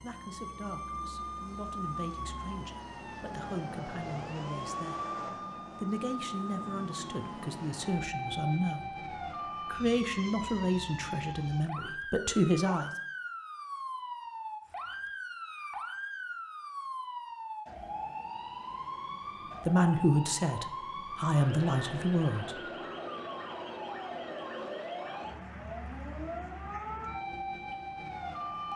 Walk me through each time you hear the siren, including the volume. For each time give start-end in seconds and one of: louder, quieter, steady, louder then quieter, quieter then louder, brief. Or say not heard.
0.0-28.7 steady.